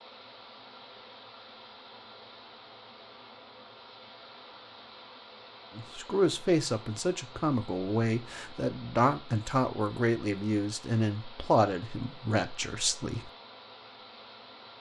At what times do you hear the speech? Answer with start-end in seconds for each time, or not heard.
5.8-13.3.